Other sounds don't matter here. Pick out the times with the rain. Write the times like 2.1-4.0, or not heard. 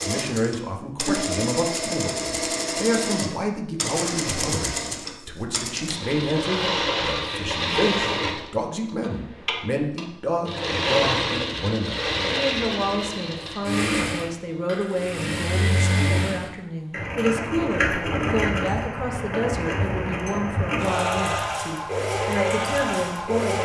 not heard.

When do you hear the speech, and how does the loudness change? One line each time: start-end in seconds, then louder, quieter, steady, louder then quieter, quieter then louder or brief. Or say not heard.
0.0-23.6 steady.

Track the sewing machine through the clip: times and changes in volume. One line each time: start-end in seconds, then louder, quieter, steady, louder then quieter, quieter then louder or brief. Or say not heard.
0.0-23.6 steady.